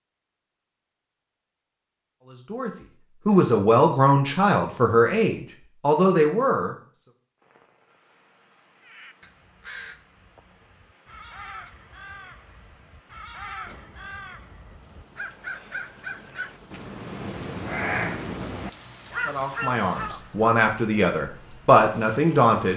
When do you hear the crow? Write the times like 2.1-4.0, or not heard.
8.8-20.4.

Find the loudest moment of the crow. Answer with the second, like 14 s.
18 s.